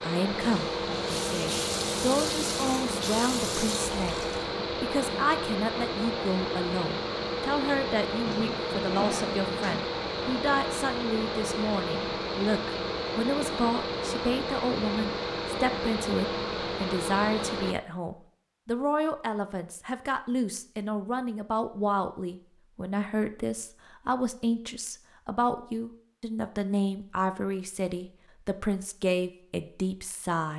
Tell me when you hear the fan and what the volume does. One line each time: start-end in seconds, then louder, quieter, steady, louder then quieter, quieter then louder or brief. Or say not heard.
0.0-17.8 steady.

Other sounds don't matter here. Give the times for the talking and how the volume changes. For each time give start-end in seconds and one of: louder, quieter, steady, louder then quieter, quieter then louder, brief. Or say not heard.
0.0-30.5 steady.